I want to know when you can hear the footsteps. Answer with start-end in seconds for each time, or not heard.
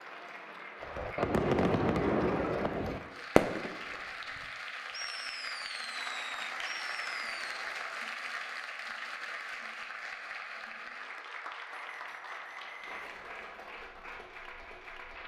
not heard.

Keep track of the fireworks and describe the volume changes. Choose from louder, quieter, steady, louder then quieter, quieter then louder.
quieter.